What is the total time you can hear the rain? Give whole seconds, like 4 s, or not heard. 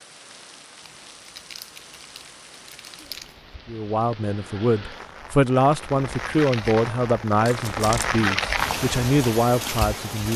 10 s.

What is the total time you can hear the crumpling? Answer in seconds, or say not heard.
3 s.